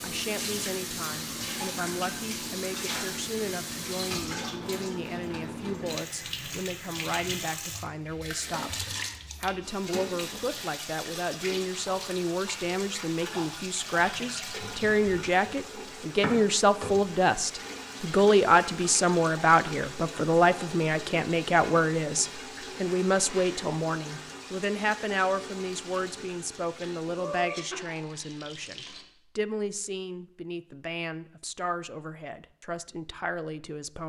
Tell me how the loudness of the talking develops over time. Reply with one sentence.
The volume of the talking goes up, then down.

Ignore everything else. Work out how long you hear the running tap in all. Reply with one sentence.
The running tap can be heard for 29 seconds in total.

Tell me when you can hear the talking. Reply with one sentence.
The talking can be heard from 0.0 to 34.0 s.